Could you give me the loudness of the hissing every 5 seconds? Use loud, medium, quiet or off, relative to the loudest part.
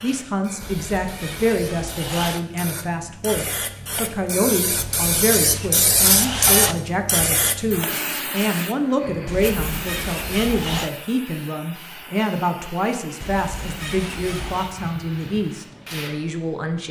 medium, loud, quiet, quiet.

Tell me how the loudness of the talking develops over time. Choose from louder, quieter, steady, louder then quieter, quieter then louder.
steady.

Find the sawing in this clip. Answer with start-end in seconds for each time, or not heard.
0.6-2.4, 4.7-6.8, 9.2-10.9, 13.2-14.8.